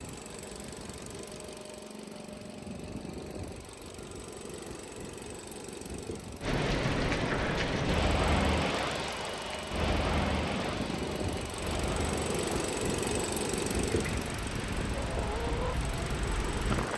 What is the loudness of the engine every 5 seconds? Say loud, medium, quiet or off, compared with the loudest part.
medium, medium, loud, medium.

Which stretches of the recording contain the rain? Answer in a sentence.
The rain can be heard from 6.4 to 16.9 s.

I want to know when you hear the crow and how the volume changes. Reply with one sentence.
The crow can't be heard in this clip.